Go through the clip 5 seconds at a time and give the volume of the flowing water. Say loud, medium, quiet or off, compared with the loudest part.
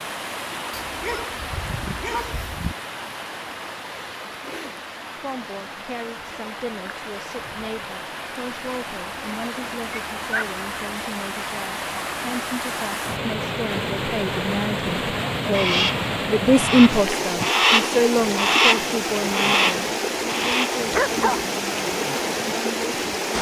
medium, medium, loud, loud, loud.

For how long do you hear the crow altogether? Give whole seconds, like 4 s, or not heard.
5 s.